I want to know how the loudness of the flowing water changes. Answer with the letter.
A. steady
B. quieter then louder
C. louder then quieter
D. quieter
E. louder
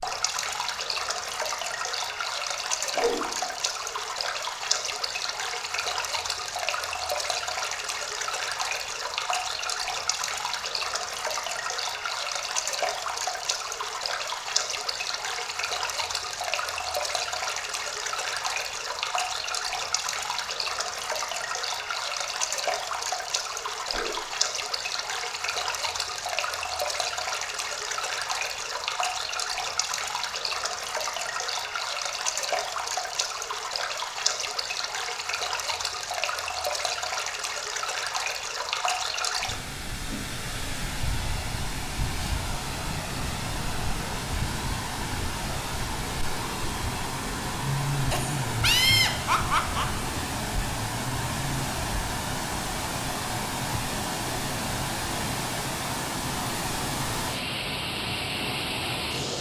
A.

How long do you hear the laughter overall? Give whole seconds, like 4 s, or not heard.
2 s.